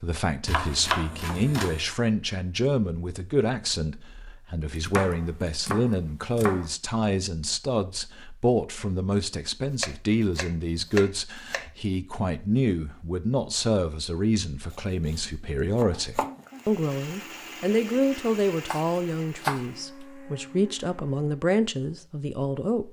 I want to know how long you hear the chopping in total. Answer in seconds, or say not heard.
8 s.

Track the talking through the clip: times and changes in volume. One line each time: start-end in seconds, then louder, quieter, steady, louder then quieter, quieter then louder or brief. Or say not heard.
0.0-22.8 steady.